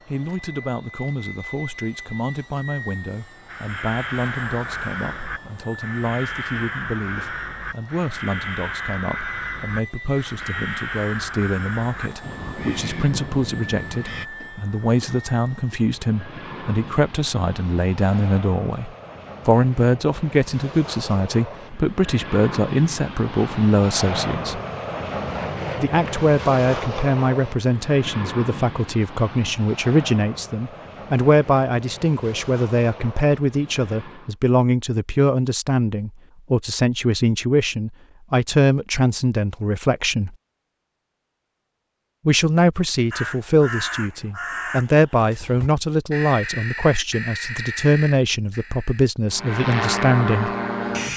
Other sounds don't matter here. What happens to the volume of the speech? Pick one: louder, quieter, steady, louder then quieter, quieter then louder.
louder.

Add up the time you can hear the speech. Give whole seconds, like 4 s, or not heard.
47 s.